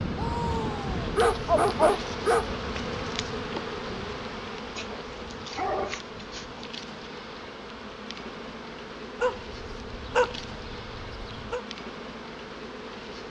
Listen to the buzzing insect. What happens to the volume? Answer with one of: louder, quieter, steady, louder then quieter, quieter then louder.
quieter.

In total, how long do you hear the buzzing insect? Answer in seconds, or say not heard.
13 s.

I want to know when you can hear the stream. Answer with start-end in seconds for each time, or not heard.
not heard.